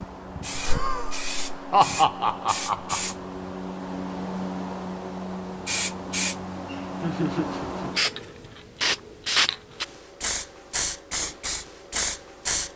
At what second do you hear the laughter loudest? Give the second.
2 s.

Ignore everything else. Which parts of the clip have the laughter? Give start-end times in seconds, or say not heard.
0.6-3.1, 7.0-7.9.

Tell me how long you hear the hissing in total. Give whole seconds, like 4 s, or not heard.
13 s.